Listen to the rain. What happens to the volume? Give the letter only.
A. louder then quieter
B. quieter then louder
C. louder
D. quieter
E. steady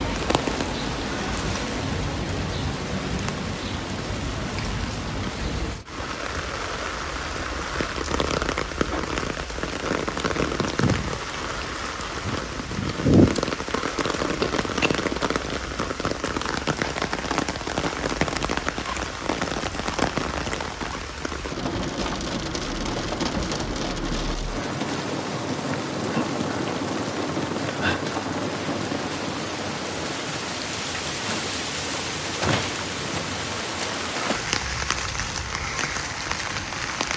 E.